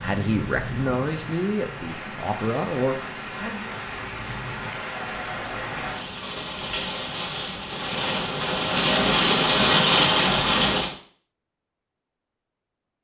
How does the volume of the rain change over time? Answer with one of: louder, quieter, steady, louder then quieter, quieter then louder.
louder.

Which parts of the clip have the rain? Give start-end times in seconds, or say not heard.
0.0-10.9.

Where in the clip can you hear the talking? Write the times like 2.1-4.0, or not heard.
0.0-3.8.